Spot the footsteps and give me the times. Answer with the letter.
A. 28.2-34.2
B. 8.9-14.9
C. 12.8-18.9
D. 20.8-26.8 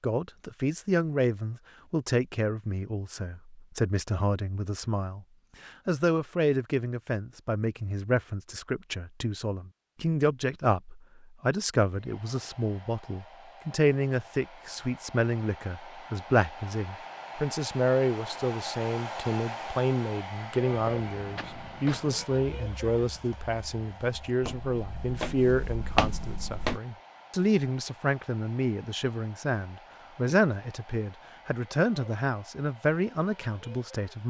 D.